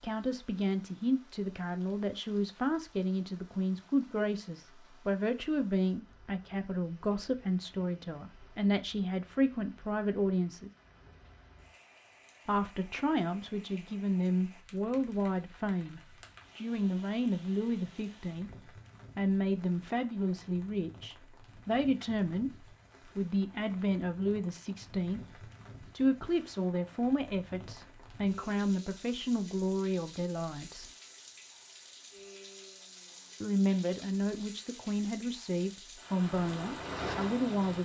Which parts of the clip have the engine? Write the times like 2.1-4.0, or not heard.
36.1-37.8.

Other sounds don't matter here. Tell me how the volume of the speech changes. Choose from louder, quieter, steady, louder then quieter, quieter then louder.
steady.